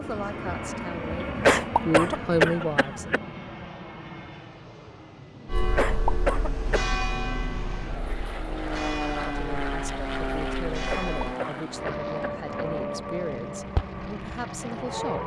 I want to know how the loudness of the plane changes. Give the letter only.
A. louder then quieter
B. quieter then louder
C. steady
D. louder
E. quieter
B.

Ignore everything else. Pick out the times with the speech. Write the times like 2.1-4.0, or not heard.
0.0-3.4, 9.3-15.2.